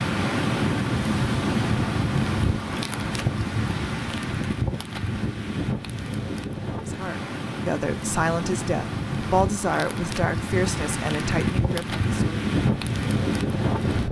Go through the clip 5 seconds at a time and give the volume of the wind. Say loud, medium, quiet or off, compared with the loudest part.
loud, medium, loud.